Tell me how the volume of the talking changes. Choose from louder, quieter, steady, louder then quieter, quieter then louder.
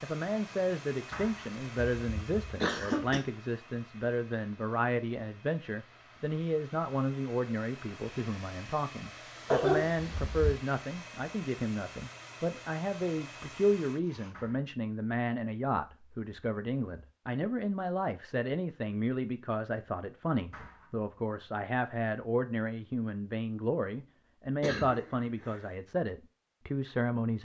steady.